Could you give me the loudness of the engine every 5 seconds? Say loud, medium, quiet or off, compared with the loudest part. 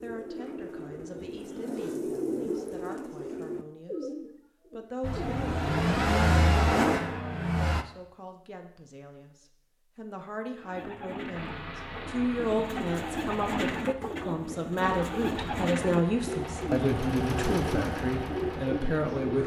off, loud, quiet, medium.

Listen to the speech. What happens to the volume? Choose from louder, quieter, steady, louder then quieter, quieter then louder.
louder.